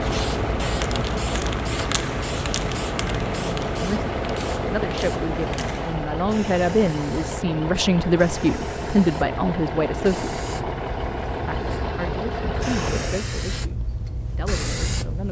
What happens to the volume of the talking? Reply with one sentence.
The volume of the talking goes up, then down.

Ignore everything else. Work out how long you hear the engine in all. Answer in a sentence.
The engine can be heard for 13 seconds in total.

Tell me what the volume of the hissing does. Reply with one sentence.
The volume of the hissing goes down, then up.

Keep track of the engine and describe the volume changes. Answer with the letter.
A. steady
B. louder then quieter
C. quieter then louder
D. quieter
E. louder
A.